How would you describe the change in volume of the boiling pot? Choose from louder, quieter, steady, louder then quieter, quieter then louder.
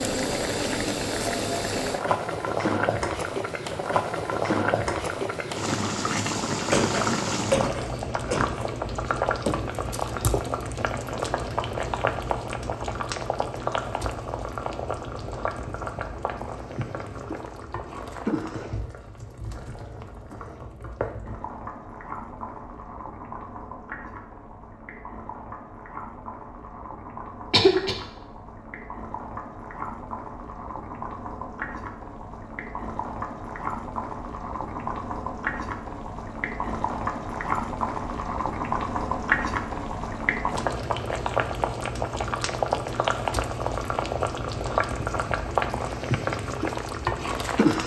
quieter then louder.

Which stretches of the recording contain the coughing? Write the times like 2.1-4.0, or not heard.
6.7-8.7, 27.5-27.9.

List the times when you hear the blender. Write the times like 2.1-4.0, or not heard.
not heard.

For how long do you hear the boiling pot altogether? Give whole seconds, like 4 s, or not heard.
48 s.